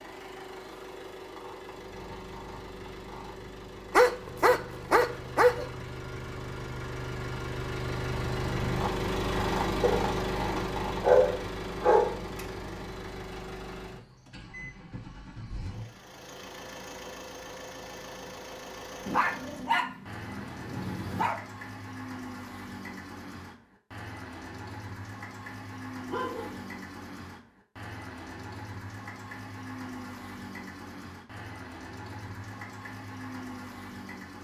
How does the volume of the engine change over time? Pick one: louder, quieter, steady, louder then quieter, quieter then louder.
louder then quieter.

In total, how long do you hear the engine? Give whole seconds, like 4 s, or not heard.
34 s.